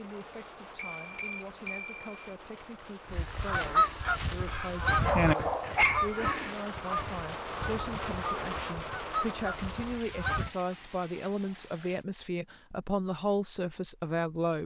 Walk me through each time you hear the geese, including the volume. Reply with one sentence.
You can hear the geese from 3.1 to 10.5 s, getting quieter.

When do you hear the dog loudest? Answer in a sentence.
The loudest moment of the dog is at 6 seconds.